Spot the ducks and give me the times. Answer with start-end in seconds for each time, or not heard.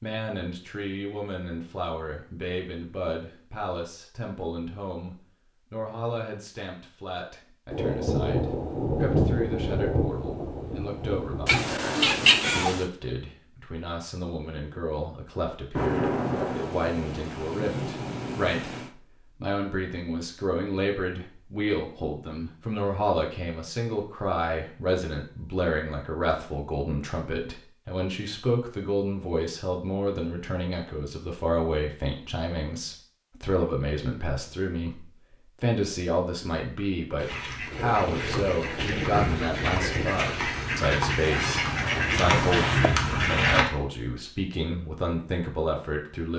37.1-43.6.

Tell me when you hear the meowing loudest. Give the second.
12 s.